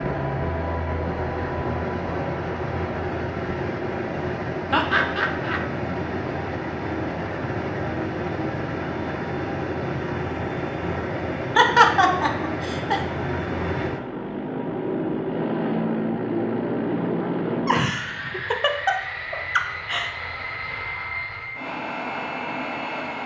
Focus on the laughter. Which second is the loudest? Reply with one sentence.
The loudest moment of the laughter is at 12 seconds.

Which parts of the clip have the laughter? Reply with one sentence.
The laughter can be heard from 4.7 to 5.6 s, from 11.6 to 13.0 s and from 17.6 to 20.1 s.